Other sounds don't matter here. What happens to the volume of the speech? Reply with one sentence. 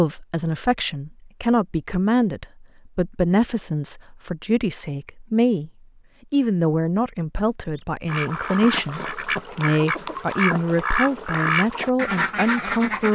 The volume of the speech stays about the same.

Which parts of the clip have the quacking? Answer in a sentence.
The quacking can be heard from 7.8 to 13.1 s.